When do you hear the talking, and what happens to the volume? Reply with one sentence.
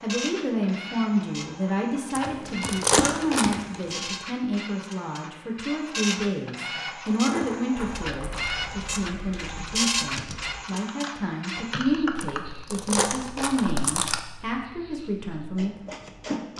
The talking can be heard from 0.0 to 15.8 s, at a steady volume.